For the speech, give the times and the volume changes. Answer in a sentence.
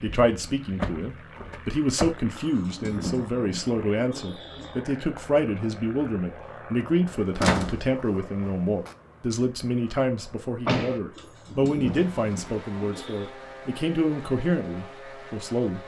You can hear the speech from 0.0 to 15.8 s, at a steady volume.